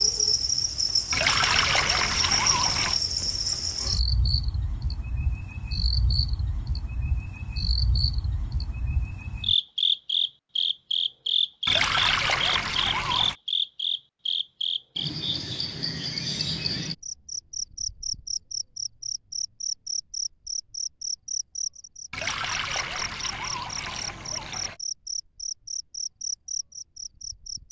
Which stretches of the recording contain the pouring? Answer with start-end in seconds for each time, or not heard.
1.1-3.0, 11.7-13.3, 22.1-24.8.